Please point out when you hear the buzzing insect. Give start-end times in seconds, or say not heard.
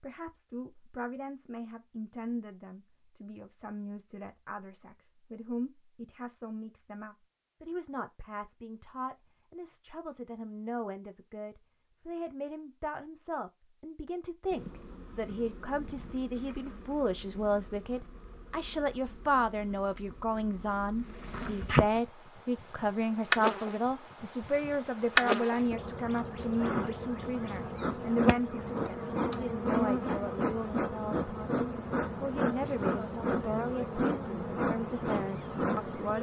14.5-36.1.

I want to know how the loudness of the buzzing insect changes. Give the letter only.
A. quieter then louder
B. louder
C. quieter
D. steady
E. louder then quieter
B.